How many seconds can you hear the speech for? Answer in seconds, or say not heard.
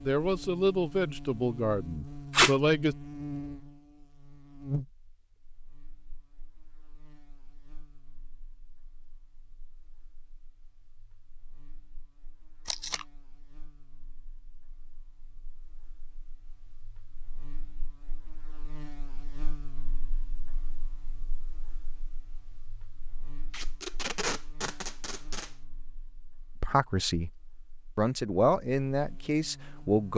6 s.